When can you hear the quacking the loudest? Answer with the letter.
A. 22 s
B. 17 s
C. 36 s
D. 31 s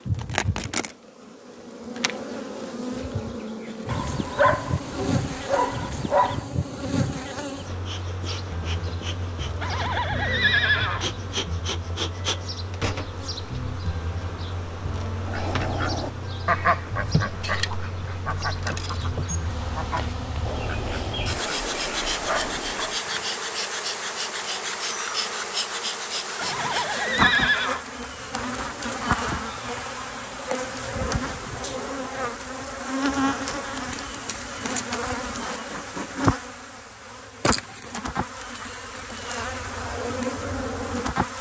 B.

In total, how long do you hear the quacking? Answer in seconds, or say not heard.
8 s.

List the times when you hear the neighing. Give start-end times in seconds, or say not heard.
9.6-11.1, 26.4-27.9.